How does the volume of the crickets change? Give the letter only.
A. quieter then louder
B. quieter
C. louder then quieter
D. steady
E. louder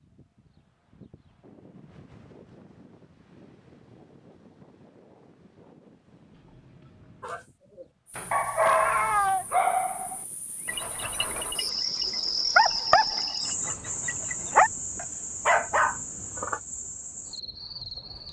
C.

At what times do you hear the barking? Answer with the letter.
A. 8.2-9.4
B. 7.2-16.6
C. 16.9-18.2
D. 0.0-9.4
B.